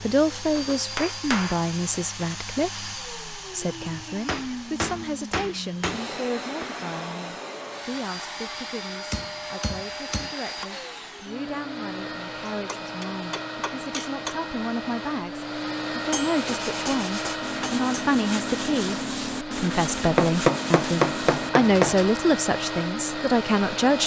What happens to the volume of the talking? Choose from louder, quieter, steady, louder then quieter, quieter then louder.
quieter then louder.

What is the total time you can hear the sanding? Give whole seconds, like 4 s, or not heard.
6 s.